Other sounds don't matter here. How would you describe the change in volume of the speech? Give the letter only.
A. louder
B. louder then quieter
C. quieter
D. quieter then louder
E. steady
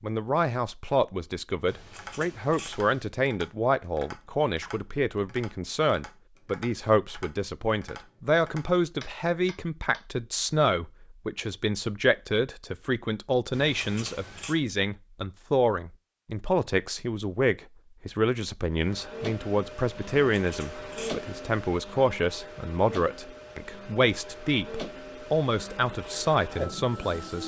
E.